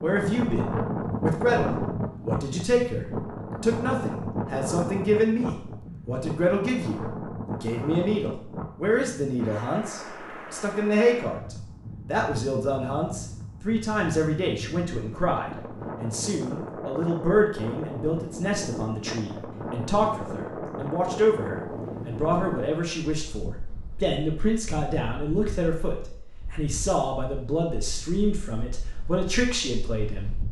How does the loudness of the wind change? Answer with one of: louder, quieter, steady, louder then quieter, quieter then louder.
quieter.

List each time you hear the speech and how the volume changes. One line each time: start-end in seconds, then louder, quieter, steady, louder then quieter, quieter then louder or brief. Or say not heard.
0.0-30.4 steady.